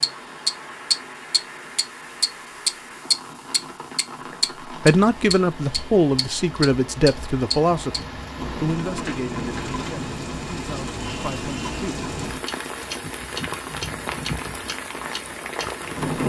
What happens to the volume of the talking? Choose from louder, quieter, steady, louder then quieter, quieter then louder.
quieter.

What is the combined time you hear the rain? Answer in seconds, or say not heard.
16 s.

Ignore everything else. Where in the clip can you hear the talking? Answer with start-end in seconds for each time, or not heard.
4.8-11.9.